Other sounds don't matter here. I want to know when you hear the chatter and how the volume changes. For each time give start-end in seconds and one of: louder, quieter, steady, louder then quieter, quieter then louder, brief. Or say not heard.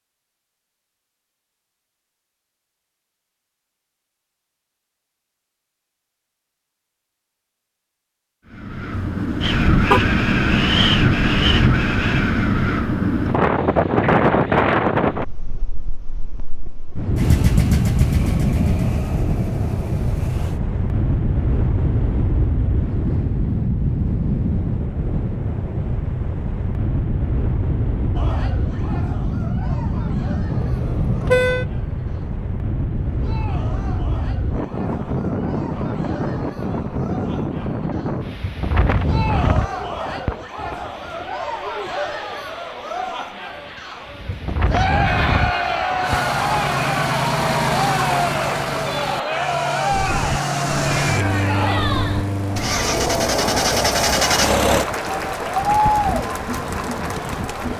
28.1-57.7 louder.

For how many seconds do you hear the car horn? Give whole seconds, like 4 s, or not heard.
2 s.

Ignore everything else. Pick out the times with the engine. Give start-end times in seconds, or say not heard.
17.1-20.6, 46.0-54.9.